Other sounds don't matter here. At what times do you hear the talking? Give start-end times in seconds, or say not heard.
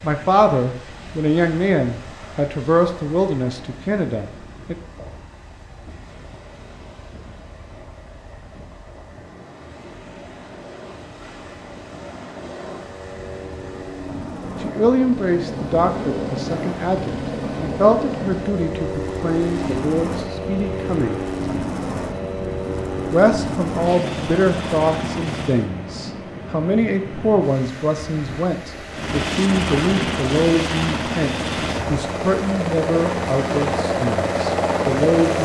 0.0-4.8, 14.6-21.2, 23.1-35.4.